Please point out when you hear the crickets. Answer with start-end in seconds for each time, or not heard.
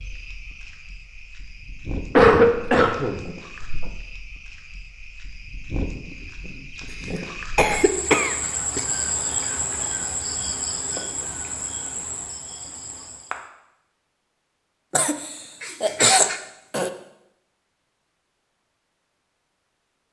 0.0-13.4.